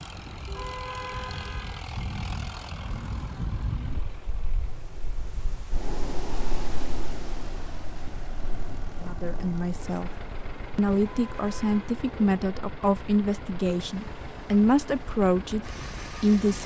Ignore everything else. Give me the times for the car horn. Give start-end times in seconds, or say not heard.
0.5-1.9, 11.2-11.9.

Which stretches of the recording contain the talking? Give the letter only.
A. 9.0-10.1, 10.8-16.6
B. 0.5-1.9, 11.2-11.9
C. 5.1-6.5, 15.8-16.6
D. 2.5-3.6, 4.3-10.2
A.